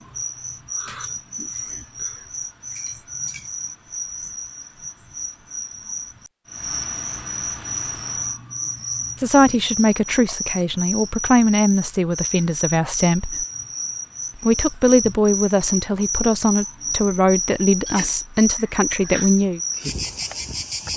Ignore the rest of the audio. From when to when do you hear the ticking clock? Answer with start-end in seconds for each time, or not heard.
not heard.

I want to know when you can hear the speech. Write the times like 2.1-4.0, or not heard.
9.2-13.4, 14.4-19.6.